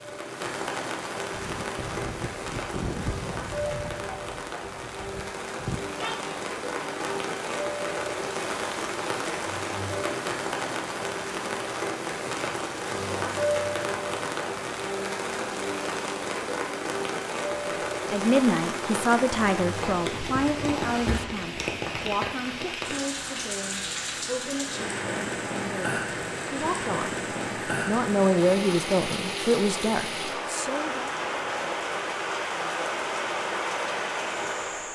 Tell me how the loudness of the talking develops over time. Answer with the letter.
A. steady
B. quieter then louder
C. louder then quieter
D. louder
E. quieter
B.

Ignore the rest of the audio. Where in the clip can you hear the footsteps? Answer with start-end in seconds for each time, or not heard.
not heard.